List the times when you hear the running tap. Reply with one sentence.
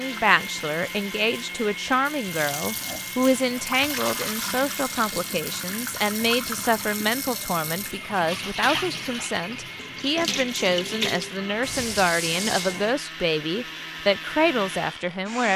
The running tap can be heard from 0.0 to 12.9 s.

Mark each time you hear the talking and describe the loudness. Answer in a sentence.
You can hear the talking from 0.0 to 15.5 s, at a steady volume.